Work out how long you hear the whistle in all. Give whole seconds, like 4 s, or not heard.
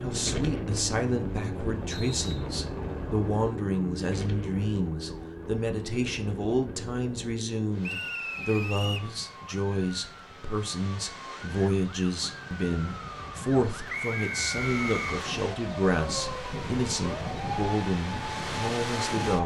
3 s.